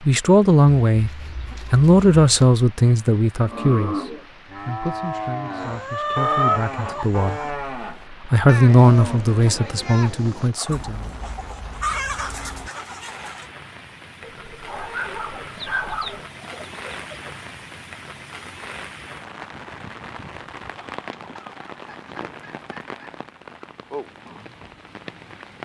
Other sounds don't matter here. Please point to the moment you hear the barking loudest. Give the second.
16 s.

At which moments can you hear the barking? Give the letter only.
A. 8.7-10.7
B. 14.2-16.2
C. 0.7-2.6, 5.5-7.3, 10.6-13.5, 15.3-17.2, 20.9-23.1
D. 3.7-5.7
B.